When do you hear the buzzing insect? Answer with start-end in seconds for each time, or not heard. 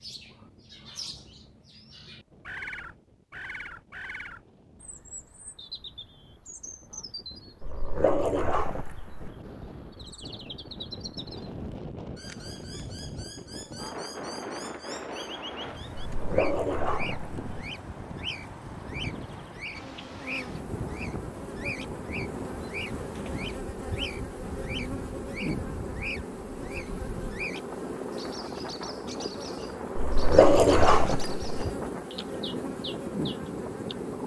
19.8-34.2.